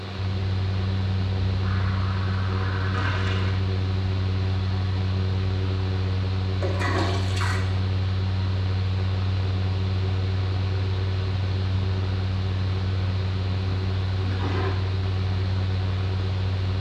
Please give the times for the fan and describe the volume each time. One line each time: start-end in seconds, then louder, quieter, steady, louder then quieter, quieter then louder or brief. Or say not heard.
0.0-16.7 steady.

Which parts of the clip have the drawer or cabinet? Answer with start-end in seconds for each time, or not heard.
not heard.